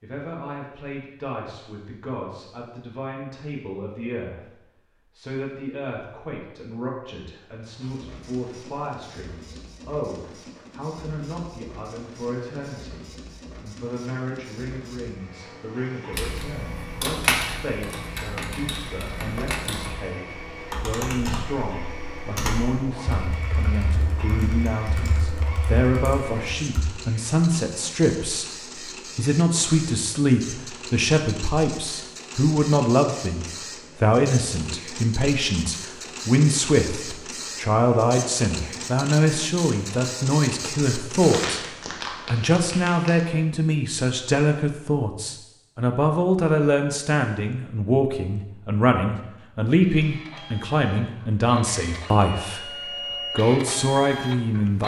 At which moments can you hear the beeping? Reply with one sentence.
You can't hear the beeping here.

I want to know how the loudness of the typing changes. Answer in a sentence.
The loudness of the typing goes down.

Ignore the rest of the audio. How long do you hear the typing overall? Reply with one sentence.
You can hear the typing for 11 seconds altogether.